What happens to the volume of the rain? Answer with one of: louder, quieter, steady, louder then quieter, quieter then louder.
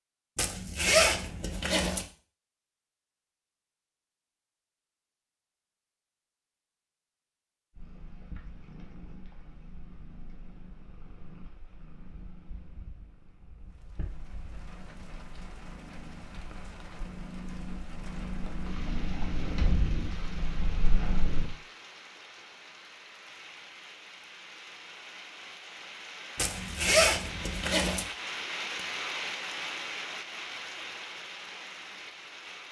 louder.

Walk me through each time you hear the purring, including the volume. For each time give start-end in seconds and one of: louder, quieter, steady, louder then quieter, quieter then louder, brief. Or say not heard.
7.8-21.5 louder.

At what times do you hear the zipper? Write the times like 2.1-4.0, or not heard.
0.3-2.0, 26.4-28.1.